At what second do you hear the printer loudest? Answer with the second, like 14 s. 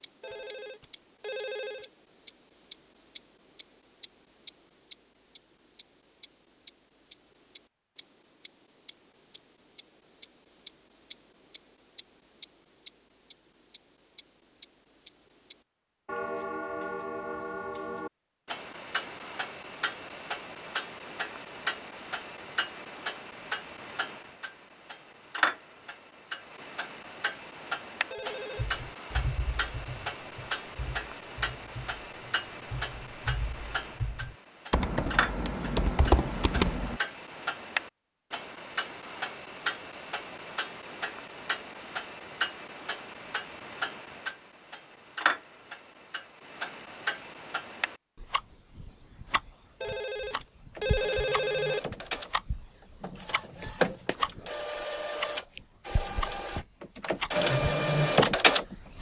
58 s.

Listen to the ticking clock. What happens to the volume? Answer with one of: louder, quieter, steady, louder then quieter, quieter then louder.
quieter.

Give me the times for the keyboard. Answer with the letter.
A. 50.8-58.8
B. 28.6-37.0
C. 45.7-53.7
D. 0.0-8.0
B.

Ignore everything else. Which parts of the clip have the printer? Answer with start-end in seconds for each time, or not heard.
50.8-58.8.